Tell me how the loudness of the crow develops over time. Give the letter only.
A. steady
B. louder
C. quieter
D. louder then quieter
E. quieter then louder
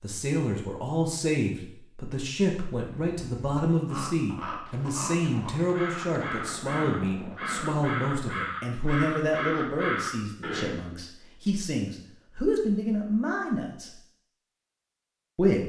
B.